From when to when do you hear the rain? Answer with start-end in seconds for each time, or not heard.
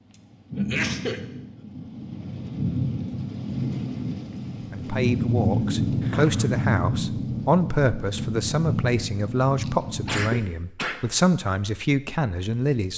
0.0-10.3.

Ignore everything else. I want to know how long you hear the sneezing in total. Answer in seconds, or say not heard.
3 s.